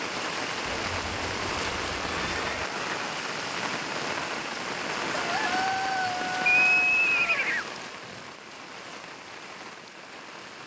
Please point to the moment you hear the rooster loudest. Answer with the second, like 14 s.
6 s.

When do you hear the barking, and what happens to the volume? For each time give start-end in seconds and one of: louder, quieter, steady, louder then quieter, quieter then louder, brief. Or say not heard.
not heard.